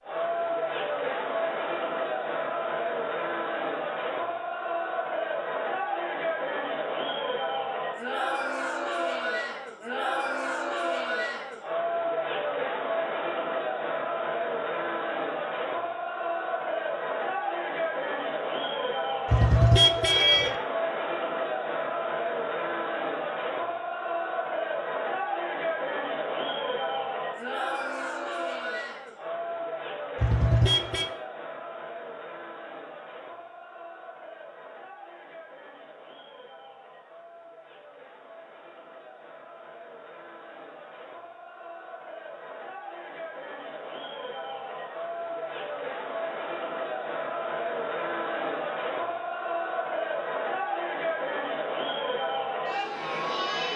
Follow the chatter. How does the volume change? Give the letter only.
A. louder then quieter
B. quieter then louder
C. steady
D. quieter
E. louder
B.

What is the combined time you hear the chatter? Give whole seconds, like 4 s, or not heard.
54 s.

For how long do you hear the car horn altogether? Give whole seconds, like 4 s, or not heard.
2 s.